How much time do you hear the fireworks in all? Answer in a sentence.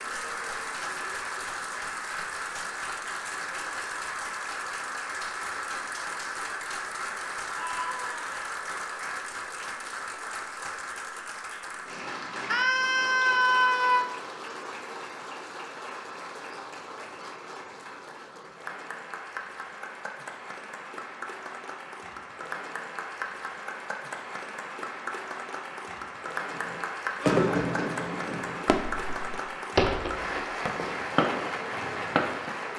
The fireworks can be heard for 6 seconds in total.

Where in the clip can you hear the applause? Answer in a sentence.
You can hear the applause from 0.0 to 32.7 s.